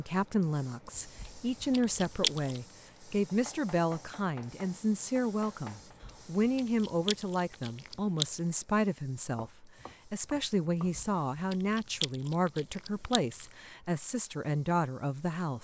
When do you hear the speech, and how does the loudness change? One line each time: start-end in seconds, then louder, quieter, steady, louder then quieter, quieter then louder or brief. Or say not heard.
0.0-15.5 steady.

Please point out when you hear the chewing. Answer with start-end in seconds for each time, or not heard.
0.9-2.6, 6.0-8.2, 10.9-13.4.